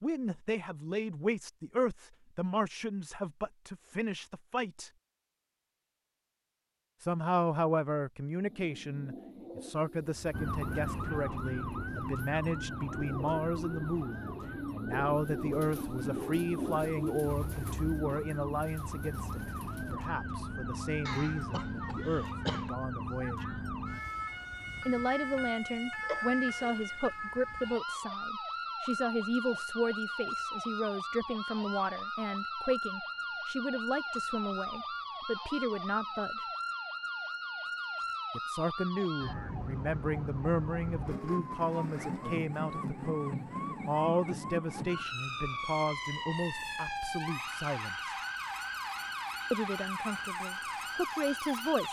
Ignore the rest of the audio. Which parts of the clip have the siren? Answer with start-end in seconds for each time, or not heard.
10.3-51.8.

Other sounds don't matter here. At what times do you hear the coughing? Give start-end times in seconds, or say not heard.
21.1-22.8, 26.0-26.8.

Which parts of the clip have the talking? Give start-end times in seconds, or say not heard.
0.0-4.9, 7.0-23.6, 24.9-36.5, 38.3-48.1, 49.5-51.8.